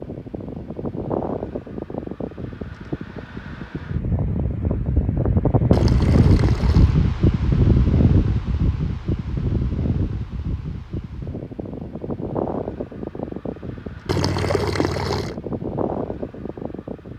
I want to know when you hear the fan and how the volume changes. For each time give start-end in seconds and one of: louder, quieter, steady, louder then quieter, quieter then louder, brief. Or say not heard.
0.0-17.1 louder then quieter.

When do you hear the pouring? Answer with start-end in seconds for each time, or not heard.
5.7-7.0, 14.1-15.3.